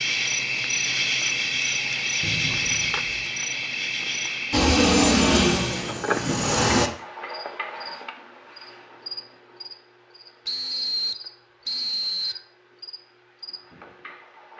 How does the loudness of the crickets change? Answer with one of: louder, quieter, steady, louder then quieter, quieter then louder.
quieter.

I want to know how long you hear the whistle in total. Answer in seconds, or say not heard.
3 s.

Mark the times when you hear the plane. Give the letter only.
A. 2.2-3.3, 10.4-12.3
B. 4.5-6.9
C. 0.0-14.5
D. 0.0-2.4
B.